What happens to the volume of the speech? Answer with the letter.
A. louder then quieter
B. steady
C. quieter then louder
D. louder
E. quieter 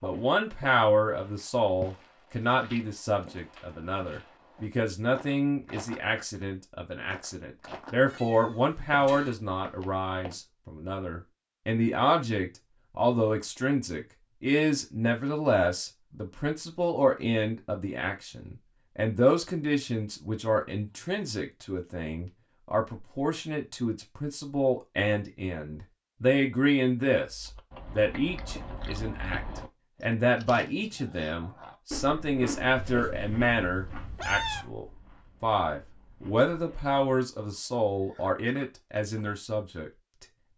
B.